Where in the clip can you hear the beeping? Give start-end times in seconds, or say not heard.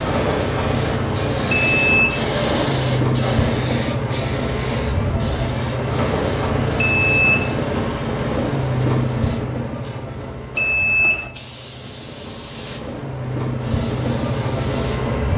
1.4-2.2, 6.8-7.5, 10.6-11.3.